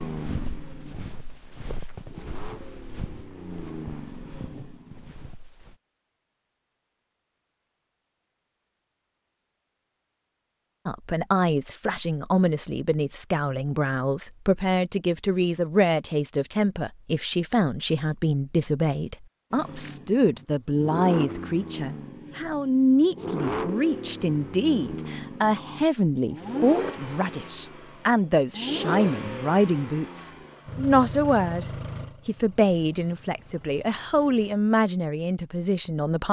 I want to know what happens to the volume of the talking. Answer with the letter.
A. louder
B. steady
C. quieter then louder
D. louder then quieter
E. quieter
B.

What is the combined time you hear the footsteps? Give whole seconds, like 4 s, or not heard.
6 s.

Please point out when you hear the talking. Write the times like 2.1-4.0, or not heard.
10.8-36.2.